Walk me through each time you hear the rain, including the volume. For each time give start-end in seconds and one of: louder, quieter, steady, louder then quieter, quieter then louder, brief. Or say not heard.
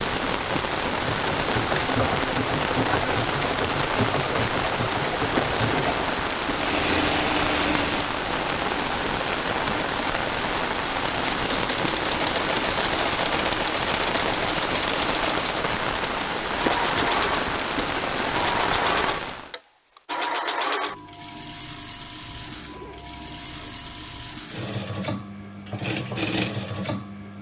0.0-19.6 steady.